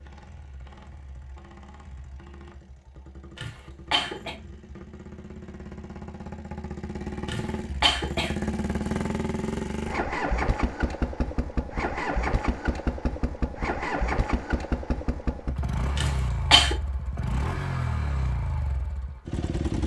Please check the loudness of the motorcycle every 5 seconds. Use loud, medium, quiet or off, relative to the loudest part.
quiet, loud, loud, loud.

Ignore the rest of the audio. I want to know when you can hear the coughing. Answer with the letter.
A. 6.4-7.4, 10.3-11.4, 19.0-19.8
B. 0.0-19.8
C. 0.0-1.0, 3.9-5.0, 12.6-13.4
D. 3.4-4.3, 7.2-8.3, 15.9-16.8
D.